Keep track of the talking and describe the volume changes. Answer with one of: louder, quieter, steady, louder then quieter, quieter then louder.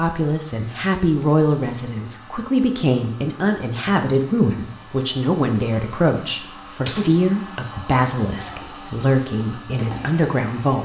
steady.